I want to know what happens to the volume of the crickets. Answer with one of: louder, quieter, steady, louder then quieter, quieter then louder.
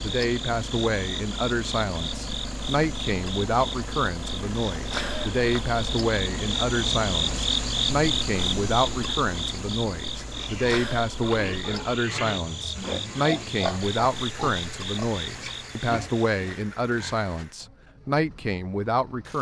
louder then quieter.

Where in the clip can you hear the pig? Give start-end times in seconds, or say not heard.
10.3-17.4.